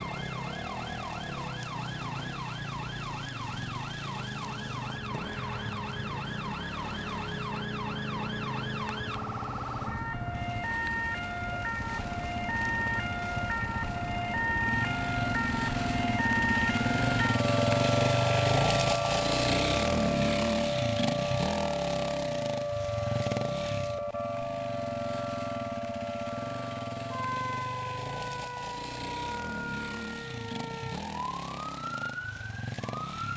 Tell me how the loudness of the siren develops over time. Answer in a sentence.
The loudness of the siren goes up, then down.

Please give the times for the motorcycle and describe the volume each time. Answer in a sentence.
The motorcycle can be heard from 0.0 to 33.3 s, getting louder then quieter.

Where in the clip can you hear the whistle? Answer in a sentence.
The whistle can't be heard in this clip.